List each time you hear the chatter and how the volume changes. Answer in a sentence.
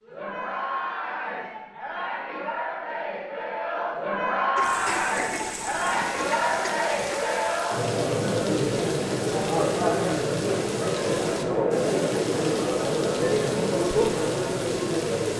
You can hear the chatter from 0.0 to 15.3 s, getting louder.